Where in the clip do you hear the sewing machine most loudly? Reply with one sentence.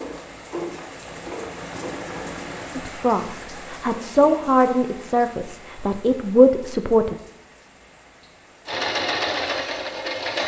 The volume of the sewing machine peaks at 9 seconds.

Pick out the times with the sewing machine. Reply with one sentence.
You can hear the sewing machine from 0.0 to 3.8 s and from 8.7 to 10.4 s.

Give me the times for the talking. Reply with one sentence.
You can hear the talking from 2.8 to 7.2 s.